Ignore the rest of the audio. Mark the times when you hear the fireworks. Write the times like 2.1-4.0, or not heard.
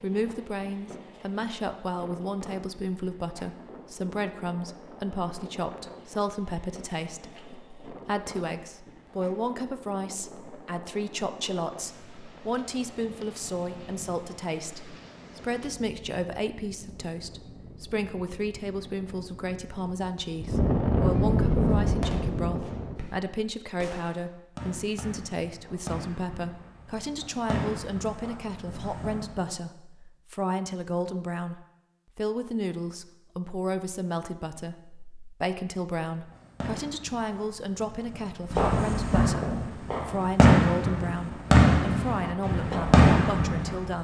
21.6-29.5, 36.1-43.9.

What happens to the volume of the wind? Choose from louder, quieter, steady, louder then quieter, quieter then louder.
louder.